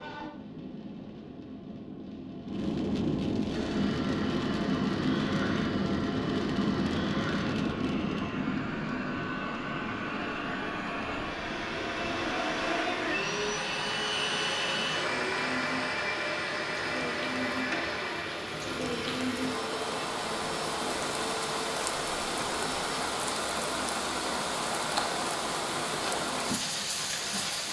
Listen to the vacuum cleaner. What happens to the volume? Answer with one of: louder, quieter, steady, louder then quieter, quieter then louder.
louder then quieter.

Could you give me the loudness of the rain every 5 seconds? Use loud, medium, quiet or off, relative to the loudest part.
loud, loud, quiet, medium, loud, loud.